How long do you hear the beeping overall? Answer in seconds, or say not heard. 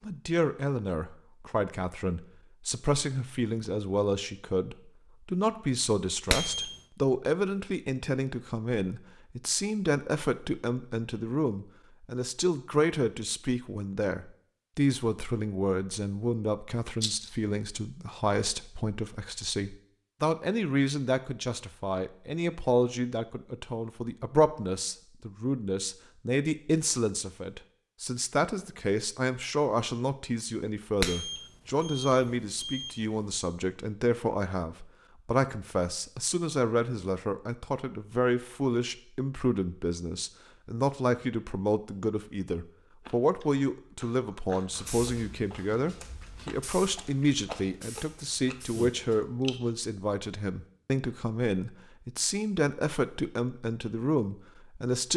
3 s.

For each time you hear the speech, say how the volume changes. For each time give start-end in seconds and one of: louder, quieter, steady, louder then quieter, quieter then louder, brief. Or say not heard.
0.0-55.1 steady.